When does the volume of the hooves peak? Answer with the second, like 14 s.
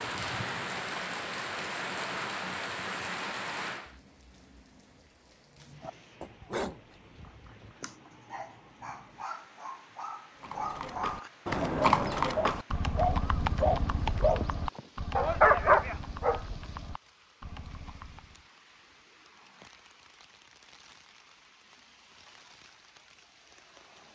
12 s.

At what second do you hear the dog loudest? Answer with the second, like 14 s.
16 s.